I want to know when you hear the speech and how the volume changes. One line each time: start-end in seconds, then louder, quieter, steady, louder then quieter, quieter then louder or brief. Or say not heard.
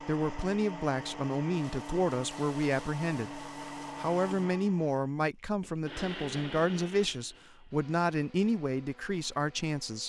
0.0-10.0 steady.